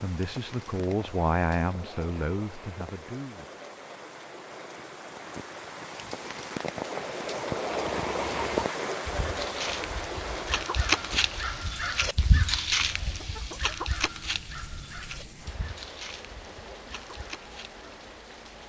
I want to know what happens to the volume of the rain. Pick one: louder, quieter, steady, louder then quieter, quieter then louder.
louder then quieter.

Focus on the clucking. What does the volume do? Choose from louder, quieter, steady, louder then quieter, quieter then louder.
louder then quieter.